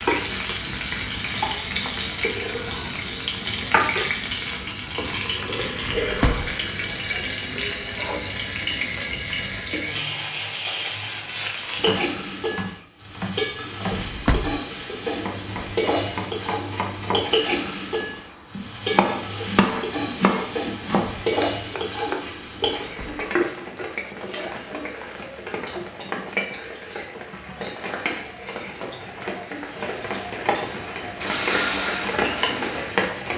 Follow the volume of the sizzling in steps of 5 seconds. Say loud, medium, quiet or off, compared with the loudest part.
loud, loud, loud, loud, loud, medium, loud.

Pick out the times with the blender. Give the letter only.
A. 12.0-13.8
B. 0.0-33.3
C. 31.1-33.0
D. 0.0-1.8
C.